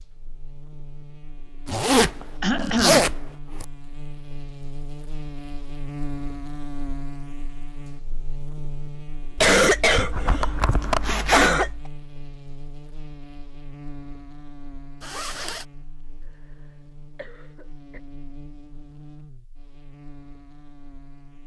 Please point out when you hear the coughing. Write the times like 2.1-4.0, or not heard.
2.4-3.1, 9.3-11.8, 17.1-18.0.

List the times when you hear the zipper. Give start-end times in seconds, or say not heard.
1.6-3.6, 10.6-11.6, 15.0-15.7.